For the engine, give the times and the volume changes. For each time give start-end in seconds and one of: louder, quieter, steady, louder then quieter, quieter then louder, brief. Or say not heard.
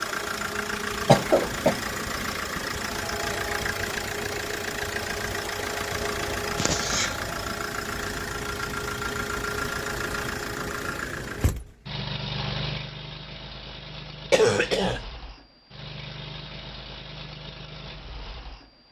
0.0-18.8 quieter.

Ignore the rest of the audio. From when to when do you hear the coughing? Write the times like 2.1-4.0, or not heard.
1.1-1.8, 6.5-7.1, 14.3-15.0.